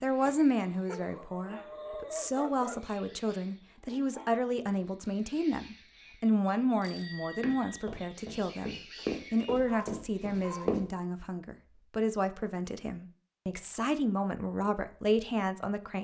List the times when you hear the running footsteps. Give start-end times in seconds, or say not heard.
7.3-10.8.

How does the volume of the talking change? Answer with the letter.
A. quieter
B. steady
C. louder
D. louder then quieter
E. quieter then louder
B.